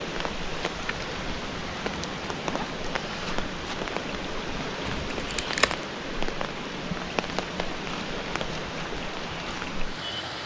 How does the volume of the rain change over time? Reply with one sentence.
The volume of the rain stays about the same.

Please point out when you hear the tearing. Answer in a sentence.
The tearing can be heard from 4.8 to 5.8 s.